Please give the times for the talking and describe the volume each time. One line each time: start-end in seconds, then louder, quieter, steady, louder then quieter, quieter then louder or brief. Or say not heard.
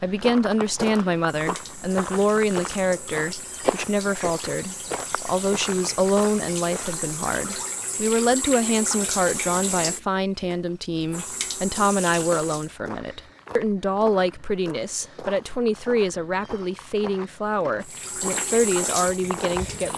0.0-19.9 steady.